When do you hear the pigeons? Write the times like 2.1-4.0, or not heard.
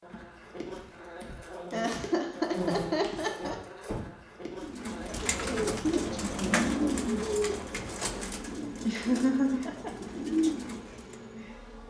4.6-11.2.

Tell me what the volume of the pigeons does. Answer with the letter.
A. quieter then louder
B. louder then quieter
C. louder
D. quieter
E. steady
A.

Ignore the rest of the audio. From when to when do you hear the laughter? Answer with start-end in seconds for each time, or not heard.
1.7-3.5, 8.8-9.9.